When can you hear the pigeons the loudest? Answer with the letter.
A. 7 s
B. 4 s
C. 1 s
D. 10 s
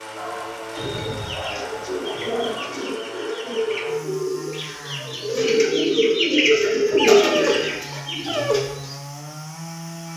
A.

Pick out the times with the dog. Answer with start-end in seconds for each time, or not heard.
0.1-2.9, 6.9-8.6.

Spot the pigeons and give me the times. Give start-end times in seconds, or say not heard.
0.7-9.0.